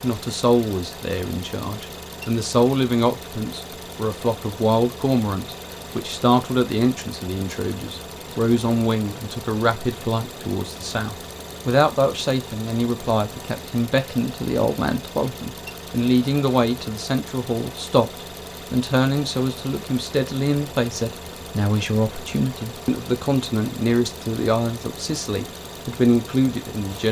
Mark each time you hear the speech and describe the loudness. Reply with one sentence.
The speech can be heard from 0.0 to 27.0 s, at a steady volume.